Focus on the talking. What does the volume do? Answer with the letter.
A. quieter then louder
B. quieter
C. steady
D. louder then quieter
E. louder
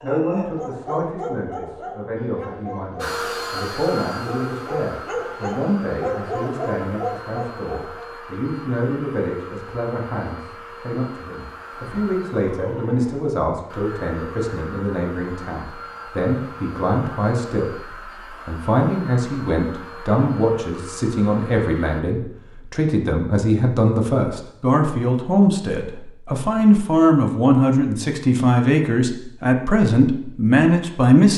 E.